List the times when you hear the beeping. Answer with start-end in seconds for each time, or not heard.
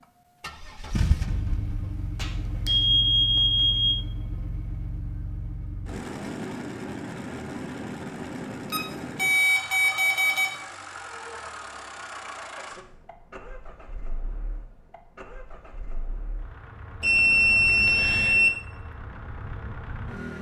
2.1-4.0, 8.7-10.5, 17.0-18.5.